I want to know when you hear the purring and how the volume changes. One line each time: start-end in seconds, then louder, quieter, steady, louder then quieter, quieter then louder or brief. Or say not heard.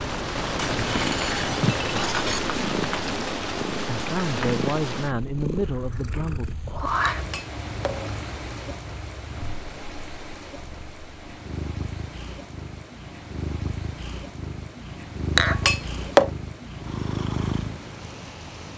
0.0-18.7 quieter then louder.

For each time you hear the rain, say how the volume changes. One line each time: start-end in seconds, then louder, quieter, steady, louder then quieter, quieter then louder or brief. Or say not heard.
0.0-18.7 quieter.